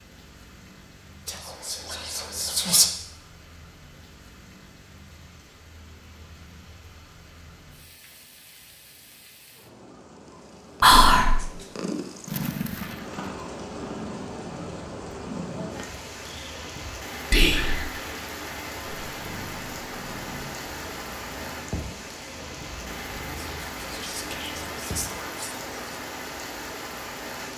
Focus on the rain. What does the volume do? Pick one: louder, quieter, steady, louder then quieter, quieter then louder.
louder.